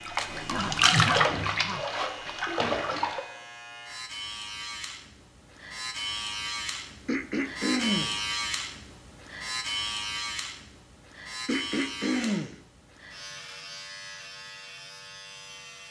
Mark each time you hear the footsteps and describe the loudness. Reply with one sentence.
The footsteps can't be heard in this clip.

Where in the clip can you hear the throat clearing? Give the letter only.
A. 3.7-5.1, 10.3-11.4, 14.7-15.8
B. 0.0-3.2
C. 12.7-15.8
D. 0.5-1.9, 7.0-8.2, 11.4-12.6
D.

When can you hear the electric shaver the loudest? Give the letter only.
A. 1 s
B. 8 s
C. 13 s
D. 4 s
B.